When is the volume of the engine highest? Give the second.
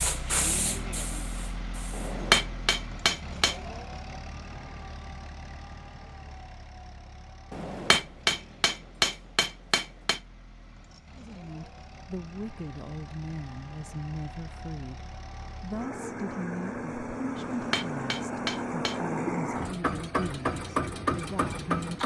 21 s.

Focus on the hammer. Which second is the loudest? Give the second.
2 s.